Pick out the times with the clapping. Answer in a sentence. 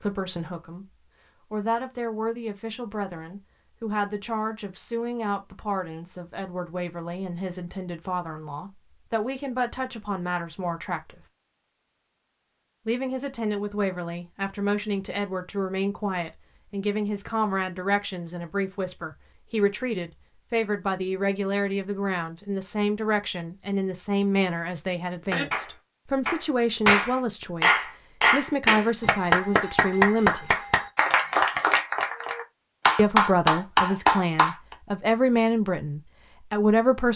The clapping can be heard from 25.3 to 34.8 s.